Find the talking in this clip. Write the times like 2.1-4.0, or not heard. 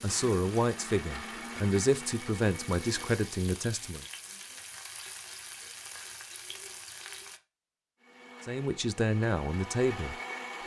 0.0-4.0, 8.4-10.6.